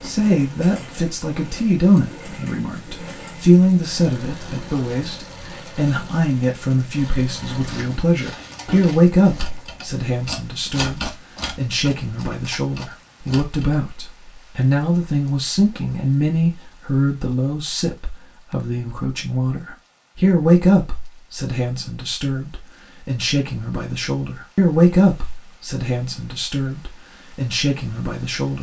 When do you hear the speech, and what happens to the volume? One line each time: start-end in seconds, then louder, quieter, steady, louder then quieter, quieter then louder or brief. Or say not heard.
0.0-28.5 steady.